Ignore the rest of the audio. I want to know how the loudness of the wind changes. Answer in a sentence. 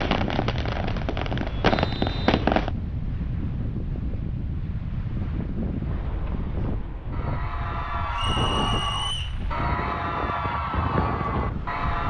The loudness of the wind stays about the same.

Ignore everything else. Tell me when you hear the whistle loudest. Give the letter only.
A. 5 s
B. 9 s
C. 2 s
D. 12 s
B.